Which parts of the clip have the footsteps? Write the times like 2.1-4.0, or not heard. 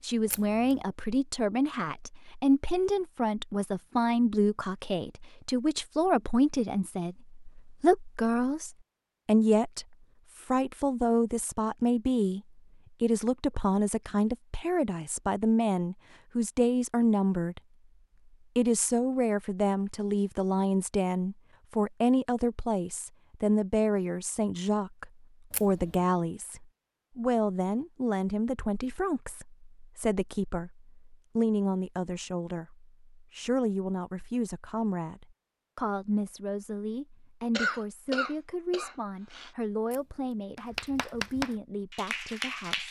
not heard.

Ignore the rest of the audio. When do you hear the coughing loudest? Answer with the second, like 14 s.
38 s.